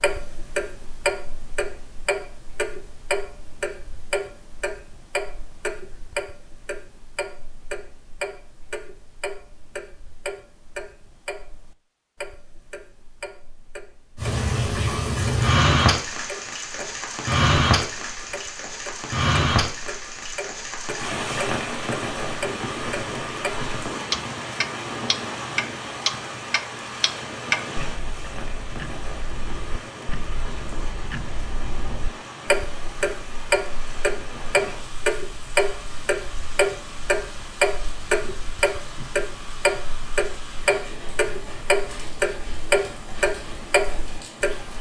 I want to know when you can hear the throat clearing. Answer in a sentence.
You can't hear the throat clearing here.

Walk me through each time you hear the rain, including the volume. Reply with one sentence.
The rain can be heard from 14.2 to 44.7 s, getting quieter.